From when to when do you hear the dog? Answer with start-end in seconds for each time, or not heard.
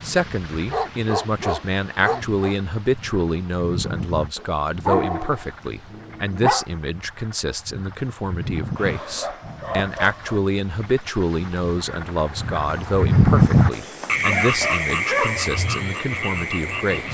0.5-2.5, 4.3-6.7, 8.8-10.4, 13.7-15.5.